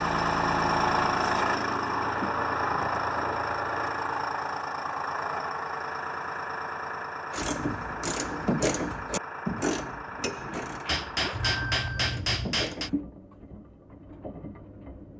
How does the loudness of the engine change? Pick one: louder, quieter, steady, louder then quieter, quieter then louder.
quieter.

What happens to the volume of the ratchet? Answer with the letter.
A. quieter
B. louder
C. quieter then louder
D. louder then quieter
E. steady
A.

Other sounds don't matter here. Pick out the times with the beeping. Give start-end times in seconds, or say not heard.
11.3-12.4.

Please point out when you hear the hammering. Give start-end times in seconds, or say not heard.
10.8-12.9.